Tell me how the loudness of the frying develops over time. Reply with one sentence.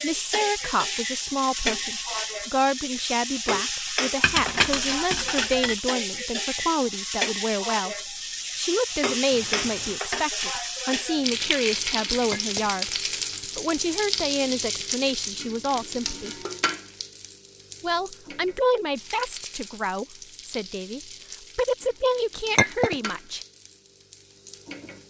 The loudness of the frying goes down.